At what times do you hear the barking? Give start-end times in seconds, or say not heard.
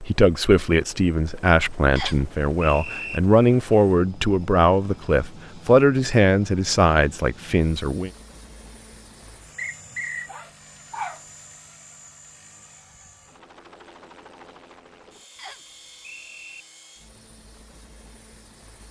10.2-11.2.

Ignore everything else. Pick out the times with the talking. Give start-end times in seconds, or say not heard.
0.0-8.1.